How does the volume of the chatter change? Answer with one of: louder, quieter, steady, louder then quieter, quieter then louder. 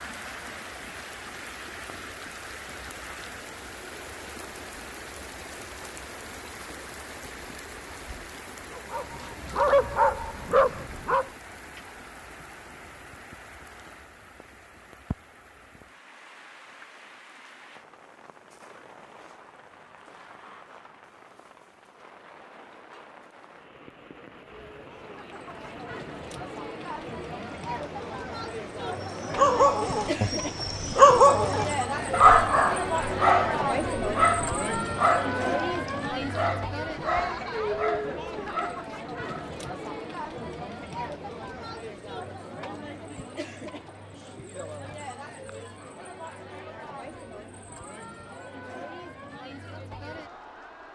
louder then quieter.